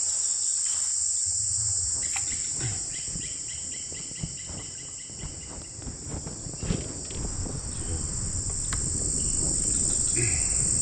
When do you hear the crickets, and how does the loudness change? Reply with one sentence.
The crickets can be heard from 0.0 to 10.7 s, getting quieter then louder.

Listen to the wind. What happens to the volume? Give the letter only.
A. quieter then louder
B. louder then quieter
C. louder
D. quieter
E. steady
C.